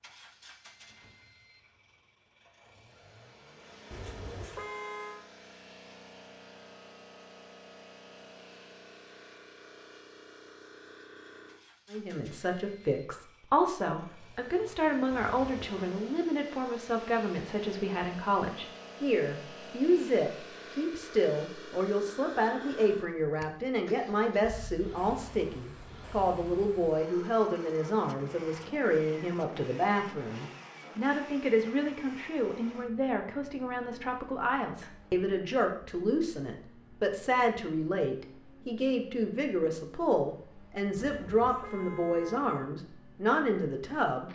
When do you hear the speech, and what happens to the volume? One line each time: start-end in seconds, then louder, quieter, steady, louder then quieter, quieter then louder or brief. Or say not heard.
11.9-44.3 steady.